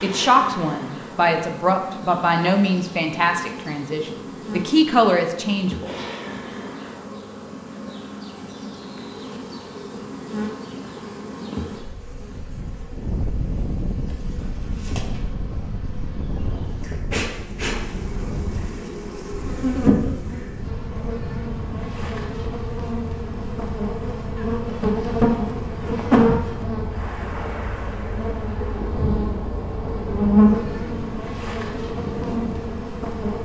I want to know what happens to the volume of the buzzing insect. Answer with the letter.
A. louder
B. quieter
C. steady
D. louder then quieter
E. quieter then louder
A.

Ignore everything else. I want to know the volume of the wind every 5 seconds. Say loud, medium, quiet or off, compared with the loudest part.
off, off, loud, loud, loud, loud, loud.